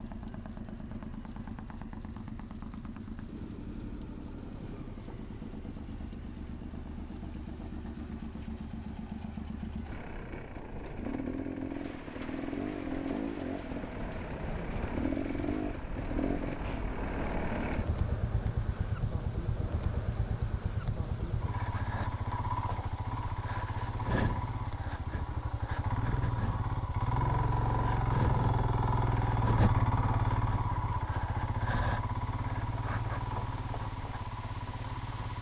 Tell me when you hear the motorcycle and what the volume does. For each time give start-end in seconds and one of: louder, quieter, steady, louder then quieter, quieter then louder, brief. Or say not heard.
0.0-35.3 louder.